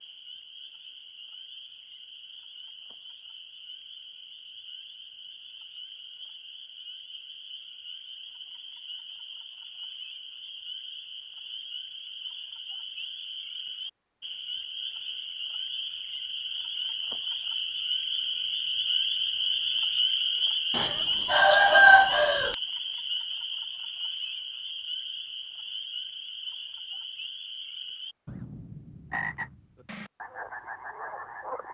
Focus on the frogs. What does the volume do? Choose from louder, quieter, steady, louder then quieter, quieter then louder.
louder then quieter.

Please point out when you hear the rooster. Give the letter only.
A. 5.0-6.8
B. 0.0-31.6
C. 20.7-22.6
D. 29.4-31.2
C.